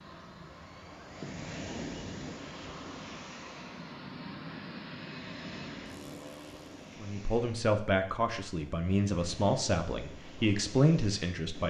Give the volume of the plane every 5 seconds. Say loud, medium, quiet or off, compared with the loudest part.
loud, loud, off.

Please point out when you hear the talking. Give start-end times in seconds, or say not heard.
7.0-11.6.